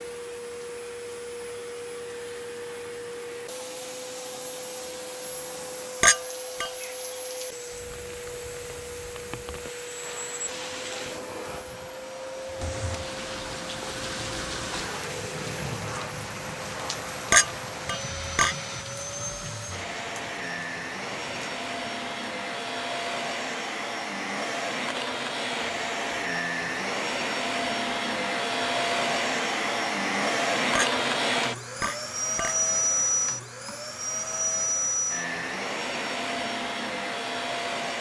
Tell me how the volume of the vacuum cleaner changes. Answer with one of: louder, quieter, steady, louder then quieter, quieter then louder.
louder.